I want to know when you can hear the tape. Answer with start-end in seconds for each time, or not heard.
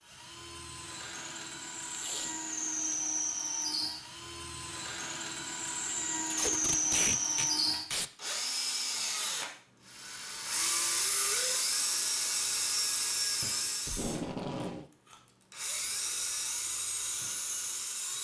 1.9-3.0, 6.2-8.1, 13.8-14.8.